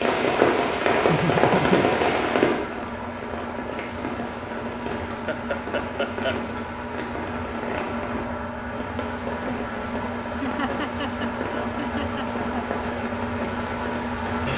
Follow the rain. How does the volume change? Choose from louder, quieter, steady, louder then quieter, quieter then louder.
quieter.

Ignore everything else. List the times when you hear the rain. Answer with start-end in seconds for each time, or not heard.
0.0-14.5.